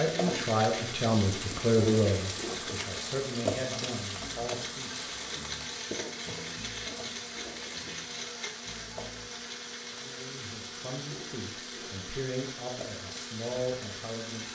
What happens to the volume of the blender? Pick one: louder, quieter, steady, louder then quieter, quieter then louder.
steady.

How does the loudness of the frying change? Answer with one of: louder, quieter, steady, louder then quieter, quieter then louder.
quieter.